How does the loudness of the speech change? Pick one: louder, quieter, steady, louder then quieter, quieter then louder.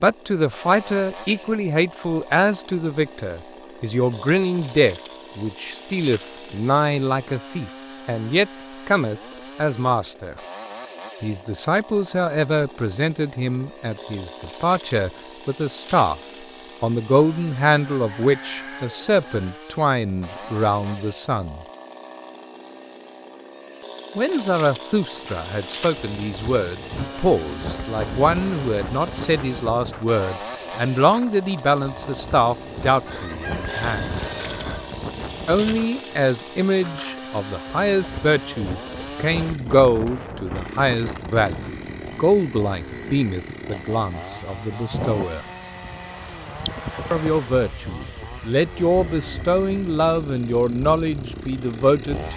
steady.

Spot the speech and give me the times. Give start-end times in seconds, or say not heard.
0.0-10.3, 11.2-16.2, 16.8-21.6, 24.1-34.1, 35.5-45.5, 47.1-52.3.